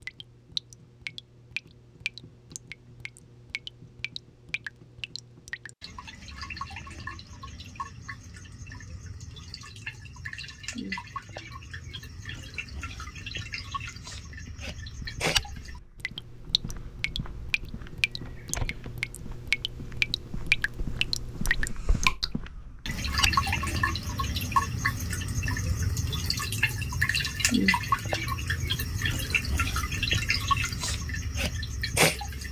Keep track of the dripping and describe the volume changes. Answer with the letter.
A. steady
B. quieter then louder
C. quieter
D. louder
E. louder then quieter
D.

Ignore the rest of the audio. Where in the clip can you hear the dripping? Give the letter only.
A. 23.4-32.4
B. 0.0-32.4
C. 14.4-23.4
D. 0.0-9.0
B.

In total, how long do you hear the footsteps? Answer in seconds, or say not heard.
9 s.